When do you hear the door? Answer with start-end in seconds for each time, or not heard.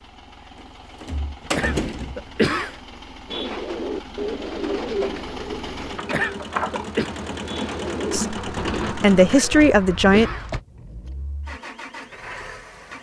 0.6-2.4, 6.0-6.8, 9.5-10.7.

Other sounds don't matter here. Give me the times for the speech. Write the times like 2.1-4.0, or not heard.
8.1-10.3.